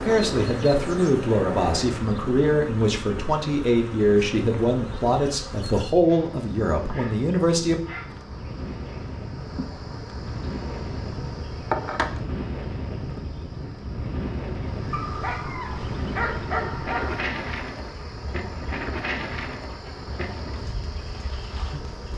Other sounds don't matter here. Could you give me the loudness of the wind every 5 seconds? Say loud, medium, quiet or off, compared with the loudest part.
loud, medium, loud, loud, medium.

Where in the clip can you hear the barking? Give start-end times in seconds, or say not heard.
6.0-8.1, 14.9-17.2.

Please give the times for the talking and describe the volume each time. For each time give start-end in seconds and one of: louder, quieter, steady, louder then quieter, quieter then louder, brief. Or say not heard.
0.0-7.8 steady.